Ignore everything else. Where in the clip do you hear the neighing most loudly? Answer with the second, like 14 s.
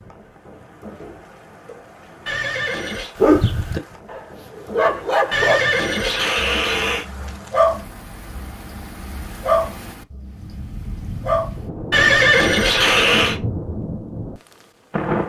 12 s.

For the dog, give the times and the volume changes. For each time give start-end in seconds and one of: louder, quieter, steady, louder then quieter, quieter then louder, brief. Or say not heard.
3.1-11.6 quieter.